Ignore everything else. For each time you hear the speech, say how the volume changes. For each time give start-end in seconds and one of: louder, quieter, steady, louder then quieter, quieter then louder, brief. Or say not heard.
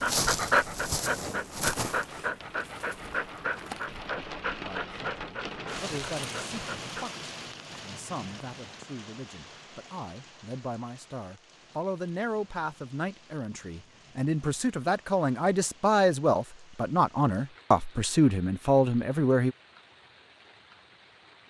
4.6-19.6 louder.